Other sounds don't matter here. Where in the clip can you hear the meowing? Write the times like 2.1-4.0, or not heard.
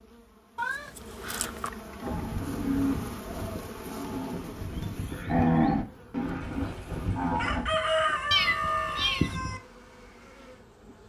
0.6-1.7, 8.3-9.3.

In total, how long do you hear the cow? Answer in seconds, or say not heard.
6 s.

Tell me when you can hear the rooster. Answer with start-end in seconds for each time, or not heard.
6.4-9.6.